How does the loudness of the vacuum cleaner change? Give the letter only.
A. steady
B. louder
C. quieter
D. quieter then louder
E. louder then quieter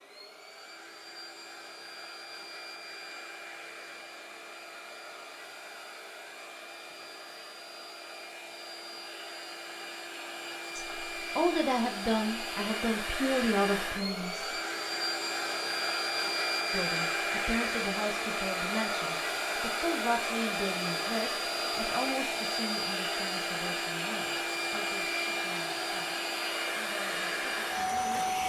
B.